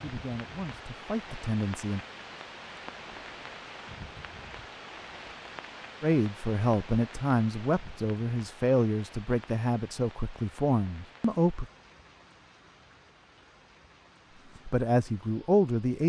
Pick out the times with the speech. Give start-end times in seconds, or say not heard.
0.0-2.0, 6.0-11.7, 14.6-16.0.